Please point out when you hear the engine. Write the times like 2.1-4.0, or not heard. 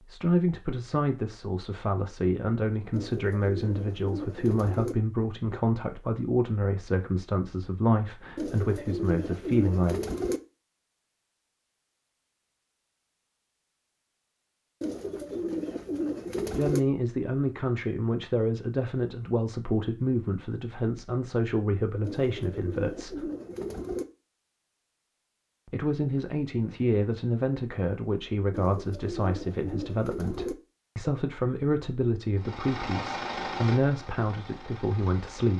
32.4-35.5.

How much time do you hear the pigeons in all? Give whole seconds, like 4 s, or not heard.
10 s.